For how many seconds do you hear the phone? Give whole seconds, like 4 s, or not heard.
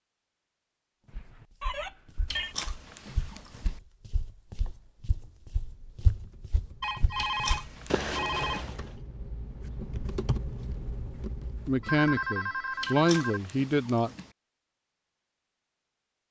5 s.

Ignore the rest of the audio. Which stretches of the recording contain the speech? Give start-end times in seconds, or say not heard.
11.7-14.1.